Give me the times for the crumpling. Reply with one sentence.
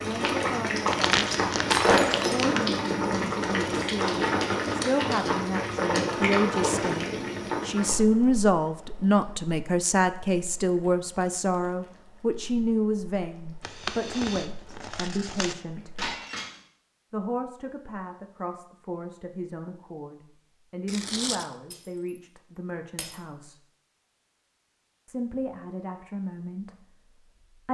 The crumpling can be heard from 0.9 to 2.6 s, from 13.6 to 15.6 s and from 20.9 to 21.5 s.